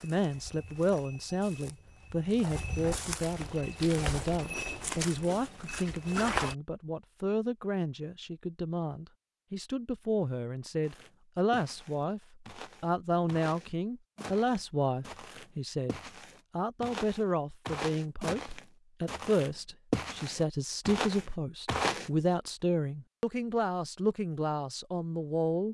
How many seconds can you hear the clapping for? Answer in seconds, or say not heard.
not heard.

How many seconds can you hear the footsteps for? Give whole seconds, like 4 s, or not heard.
18 s.